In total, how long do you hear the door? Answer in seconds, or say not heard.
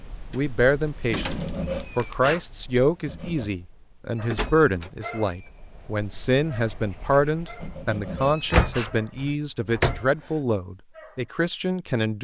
4 s.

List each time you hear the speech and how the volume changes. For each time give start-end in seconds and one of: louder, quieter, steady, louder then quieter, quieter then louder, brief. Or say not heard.
0.3-12.1 steady.